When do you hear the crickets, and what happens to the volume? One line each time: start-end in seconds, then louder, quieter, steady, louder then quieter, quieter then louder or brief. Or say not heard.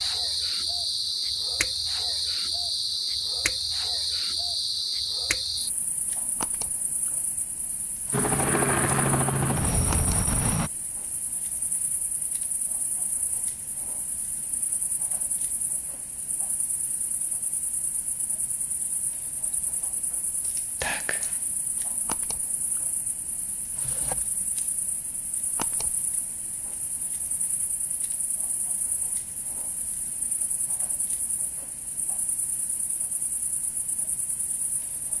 0.0-35.1 quieter.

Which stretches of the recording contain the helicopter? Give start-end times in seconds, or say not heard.
8.1-10.7.